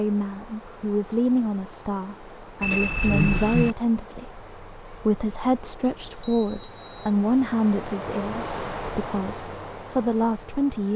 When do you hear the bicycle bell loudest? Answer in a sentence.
The loudest moment of the bicycle bell is at 3 seconds.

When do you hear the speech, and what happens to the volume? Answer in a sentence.
You can hear the speech from 0.0 to 10.9 s, at a steady volume.